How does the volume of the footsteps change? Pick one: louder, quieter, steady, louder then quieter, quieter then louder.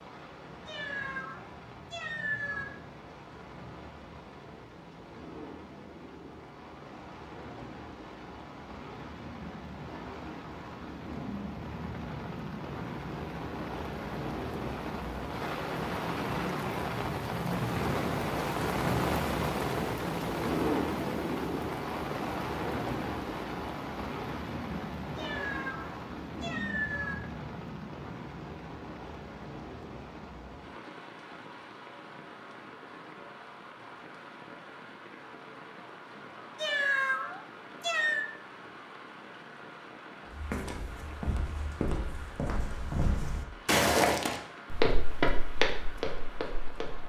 louder then quieter.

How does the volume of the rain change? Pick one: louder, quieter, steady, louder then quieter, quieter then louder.
louder then quieter.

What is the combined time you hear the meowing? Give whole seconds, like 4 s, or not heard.
6 s.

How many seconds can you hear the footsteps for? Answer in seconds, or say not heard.
7 s.